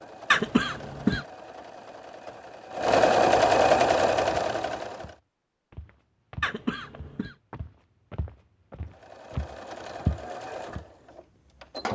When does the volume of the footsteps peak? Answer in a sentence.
The loudest moment of the footsteps is at 10 seconds.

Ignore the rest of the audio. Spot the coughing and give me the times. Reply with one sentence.
The coughing can be heard from 0.3 to 1.2 s and from 6.4 to 7.3 s.